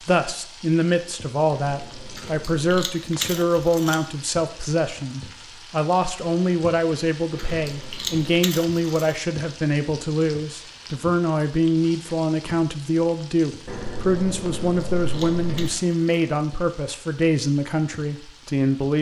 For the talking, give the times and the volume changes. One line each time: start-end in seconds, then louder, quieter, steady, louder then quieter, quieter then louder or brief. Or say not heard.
0.1-18.9 steady.